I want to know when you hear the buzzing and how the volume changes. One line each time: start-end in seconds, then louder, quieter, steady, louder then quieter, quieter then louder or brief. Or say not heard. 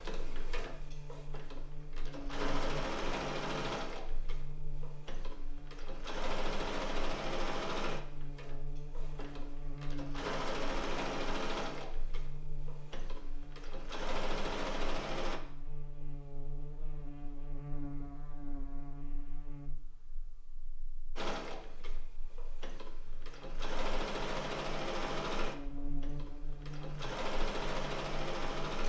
0.0-28.8 steady.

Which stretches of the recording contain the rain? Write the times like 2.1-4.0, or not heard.
not heard.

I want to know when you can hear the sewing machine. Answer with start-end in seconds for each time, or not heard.
0.0-15.4, 21.1-28.8.